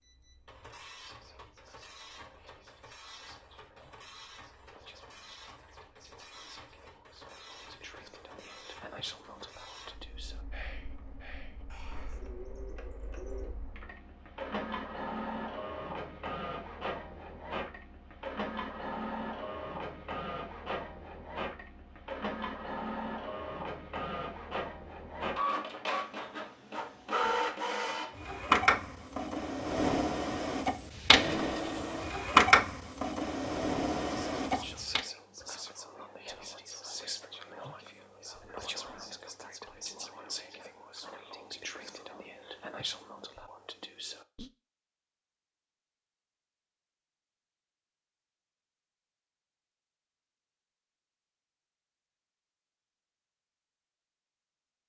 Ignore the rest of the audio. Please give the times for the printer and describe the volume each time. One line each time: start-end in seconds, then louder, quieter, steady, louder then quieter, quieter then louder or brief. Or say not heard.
0.0-35.0 louder.